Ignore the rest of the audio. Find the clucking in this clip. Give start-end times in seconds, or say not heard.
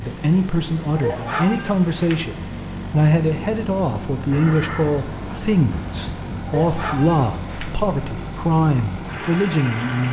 0.9-2.2, 6.5-7.8.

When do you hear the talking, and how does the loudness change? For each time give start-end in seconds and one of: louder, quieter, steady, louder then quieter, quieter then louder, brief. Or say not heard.
0.0-10.0 steady.